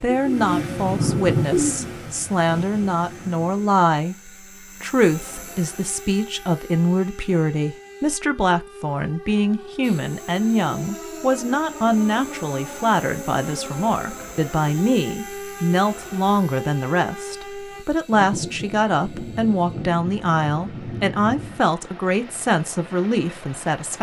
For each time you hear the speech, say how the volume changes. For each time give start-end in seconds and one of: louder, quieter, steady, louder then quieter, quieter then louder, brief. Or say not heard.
0.0-23.9 steady.